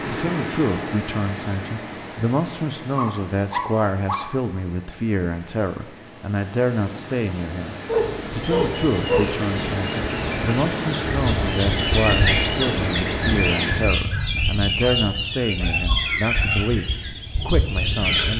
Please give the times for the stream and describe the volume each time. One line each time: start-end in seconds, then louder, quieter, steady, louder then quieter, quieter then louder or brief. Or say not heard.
0.0-13.9 quieter then louder.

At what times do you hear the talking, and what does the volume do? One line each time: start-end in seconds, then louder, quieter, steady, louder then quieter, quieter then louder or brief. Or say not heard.
0.1-18.3 steady.